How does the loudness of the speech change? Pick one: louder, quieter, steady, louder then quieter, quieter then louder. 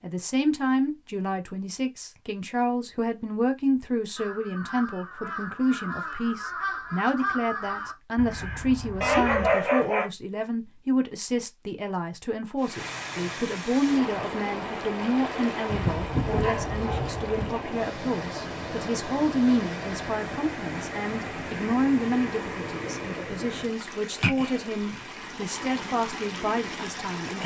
steady.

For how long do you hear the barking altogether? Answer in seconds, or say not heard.
3 s.